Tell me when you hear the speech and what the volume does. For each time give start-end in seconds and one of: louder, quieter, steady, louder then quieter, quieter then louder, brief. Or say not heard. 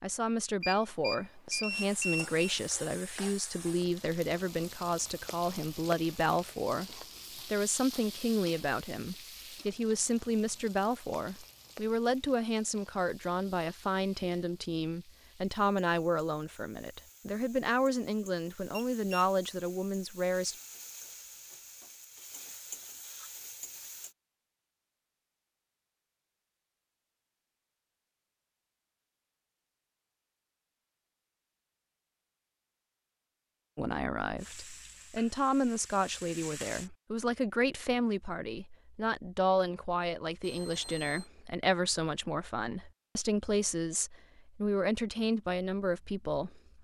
0.0-20.6 steady
33.8-46.6 steady.